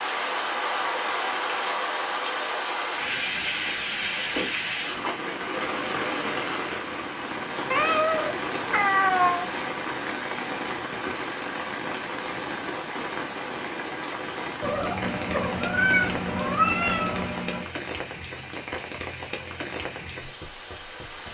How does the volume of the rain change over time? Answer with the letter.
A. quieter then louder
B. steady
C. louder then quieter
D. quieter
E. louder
D.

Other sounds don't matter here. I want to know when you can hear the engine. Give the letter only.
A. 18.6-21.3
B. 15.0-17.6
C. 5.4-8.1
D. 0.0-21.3
B.